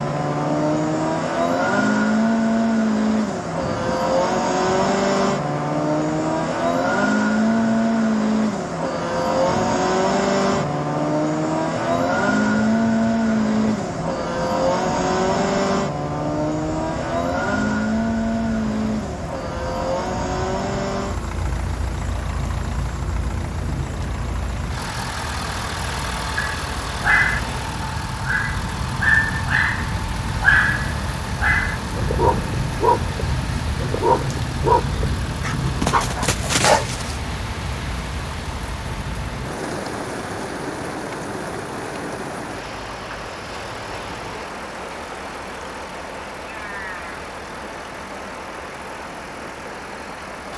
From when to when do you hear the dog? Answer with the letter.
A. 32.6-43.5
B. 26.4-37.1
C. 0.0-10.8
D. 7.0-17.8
B.